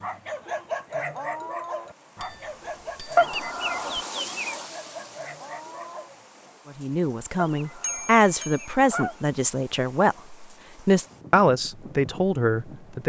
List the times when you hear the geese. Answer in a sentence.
The geese can be heard from 3.1 to 4.7 s and from 7.3 to 9.2 s.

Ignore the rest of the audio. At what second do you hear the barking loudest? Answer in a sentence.
The loudest moment of the barking is at 1 second.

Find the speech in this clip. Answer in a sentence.
The speech can be heard from 6.8 to 13.0 s.